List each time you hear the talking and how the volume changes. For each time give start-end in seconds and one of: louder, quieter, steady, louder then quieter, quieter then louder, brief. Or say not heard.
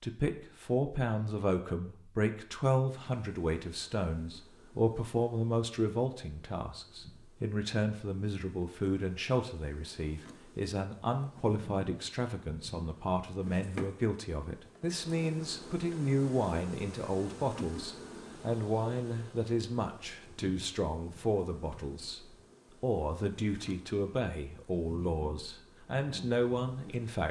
0.0-27.2 steady.